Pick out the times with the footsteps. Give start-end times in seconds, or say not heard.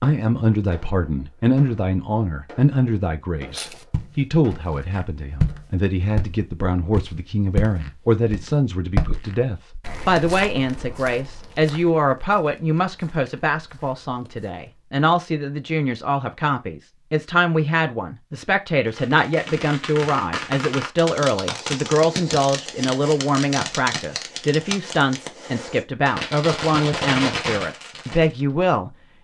3.5-14.7.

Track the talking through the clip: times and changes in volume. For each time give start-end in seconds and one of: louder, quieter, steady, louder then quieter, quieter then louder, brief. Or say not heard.
0.0-28.9 steady.